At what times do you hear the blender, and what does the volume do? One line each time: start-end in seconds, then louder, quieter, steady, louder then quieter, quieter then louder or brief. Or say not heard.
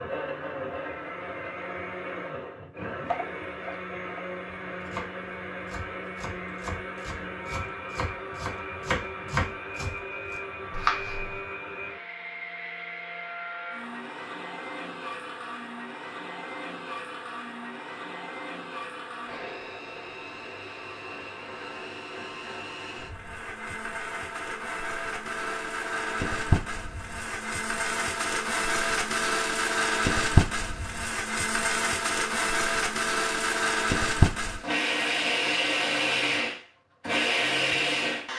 0.0-38.3 louder.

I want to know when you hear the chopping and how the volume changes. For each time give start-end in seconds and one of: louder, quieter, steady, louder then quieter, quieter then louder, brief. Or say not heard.
3.0-11.4 louder.